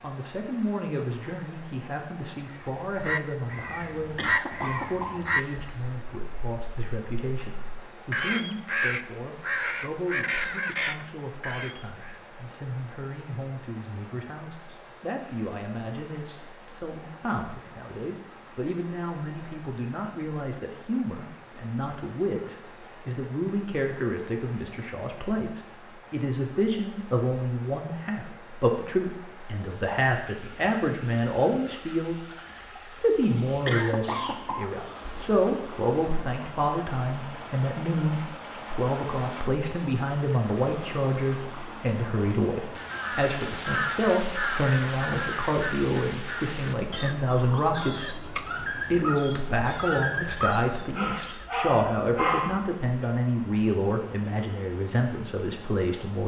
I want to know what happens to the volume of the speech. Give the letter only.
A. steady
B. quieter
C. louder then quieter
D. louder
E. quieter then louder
D.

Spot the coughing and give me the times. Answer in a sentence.
The coughing can be heard from 4.2 to 6.0 s and from 33.6 to 35.3 s.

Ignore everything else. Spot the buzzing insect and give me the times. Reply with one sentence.
The buzzing insect can't be heard in this clip.